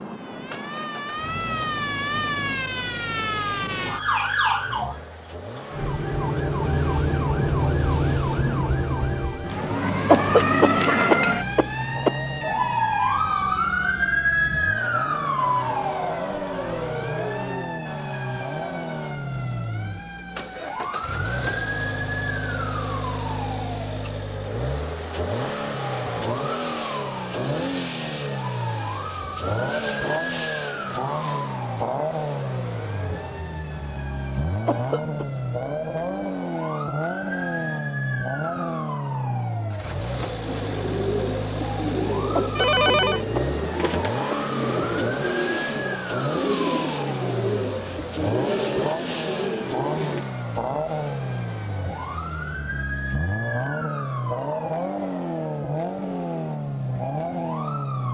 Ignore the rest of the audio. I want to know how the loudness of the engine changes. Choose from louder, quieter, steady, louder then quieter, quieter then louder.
louder.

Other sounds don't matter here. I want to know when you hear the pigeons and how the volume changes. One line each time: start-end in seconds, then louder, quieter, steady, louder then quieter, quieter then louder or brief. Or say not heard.
40.4-50.2 steady.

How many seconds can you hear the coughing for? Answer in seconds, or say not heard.
5 s.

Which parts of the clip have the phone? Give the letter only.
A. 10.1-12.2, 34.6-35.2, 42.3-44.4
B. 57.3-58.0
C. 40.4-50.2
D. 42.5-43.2
D.